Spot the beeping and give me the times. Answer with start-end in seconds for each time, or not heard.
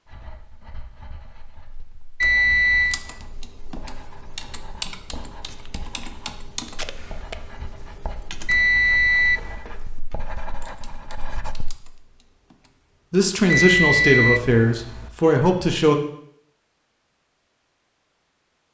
2.2-3.0, 8.4-9.6, 13.4-15.1.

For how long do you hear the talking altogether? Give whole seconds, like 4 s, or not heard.
3 s.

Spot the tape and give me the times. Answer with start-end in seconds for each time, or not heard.
6.7-7.3.